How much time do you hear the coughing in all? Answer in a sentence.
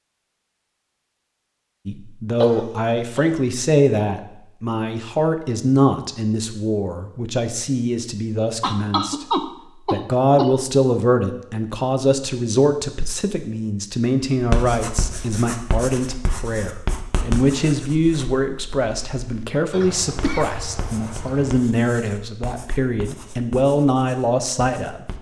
The coughing can be heard for 5 seconds in total.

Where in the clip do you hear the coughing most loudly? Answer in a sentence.
The volume of the coughing peaks at 9 seconds.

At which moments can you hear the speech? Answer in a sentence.
You can hear the speech from 1.9 to 9.2 s and from 9.9 to 25.1 s.